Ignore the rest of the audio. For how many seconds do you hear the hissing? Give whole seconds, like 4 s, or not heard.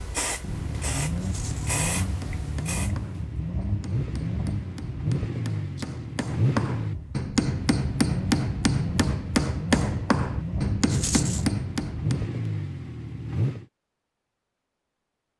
3 s.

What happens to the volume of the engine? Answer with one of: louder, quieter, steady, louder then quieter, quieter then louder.
steady.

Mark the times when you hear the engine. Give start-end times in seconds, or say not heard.
0.0-13.7.